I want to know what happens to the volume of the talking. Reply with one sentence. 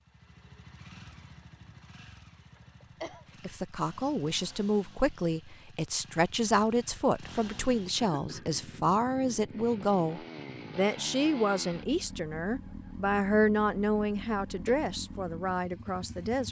The loudness of the talking stays about the same.